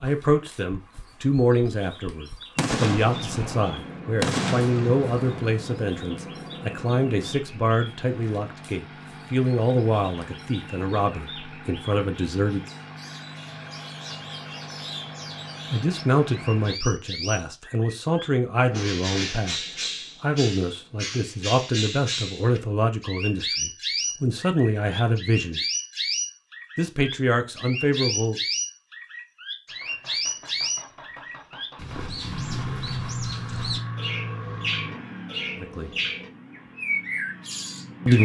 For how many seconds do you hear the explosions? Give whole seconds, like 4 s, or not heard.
3 s.